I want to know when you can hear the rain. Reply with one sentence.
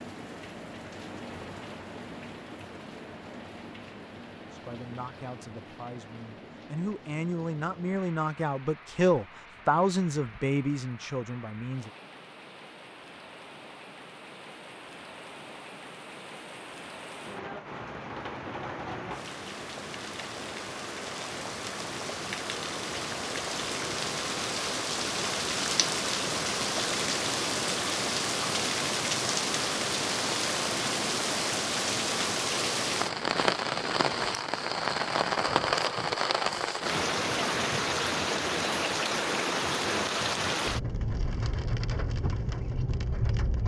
You can hear the rain from 0.0 to 43.6 s.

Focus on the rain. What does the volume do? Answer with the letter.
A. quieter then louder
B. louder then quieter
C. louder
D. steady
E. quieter
C.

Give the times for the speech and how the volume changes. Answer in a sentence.
The speech can be heard from 4.5 to 11.9 s, getting louder then quieter.